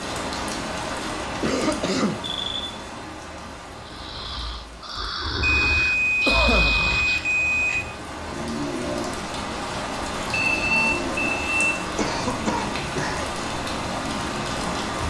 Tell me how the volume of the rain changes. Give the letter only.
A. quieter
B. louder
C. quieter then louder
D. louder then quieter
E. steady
C.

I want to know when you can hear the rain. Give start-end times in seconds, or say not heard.
0.0-15.0.